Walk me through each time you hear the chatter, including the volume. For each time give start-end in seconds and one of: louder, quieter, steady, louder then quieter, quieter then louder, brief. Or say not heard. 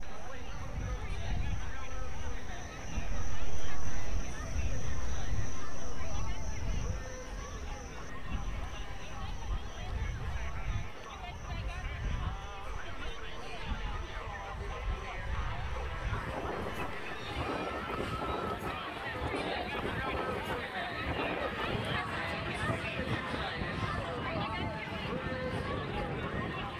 0.0-26.7 louder.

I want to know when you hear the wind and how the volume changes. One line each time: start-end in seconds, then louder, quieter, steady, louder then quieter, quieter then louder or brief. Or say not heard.
0.1-26.7 louder.